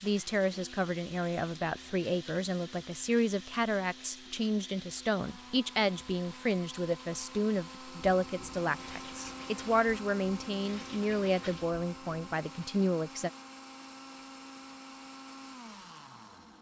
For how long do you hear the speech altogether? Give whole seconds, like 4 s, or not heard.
13 s.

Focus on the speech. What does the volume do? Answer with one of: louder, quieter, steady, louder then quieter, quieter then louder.
steady.